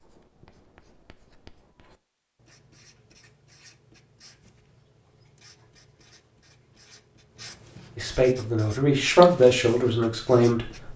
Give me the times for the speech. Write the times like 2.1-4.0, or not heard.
8.0-10.9.